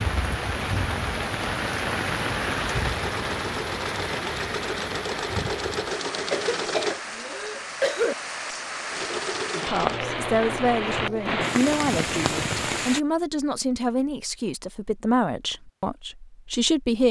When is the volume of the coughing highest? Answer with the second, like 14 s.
8 s.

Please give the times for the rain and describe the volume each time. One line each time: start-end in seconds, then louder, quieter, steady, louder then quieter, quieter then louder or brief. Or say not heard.
0.0-13.0 quieter then louder.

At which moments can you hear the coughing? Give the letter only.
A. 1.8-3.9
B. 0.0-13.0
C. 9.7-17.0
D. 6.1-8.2
D.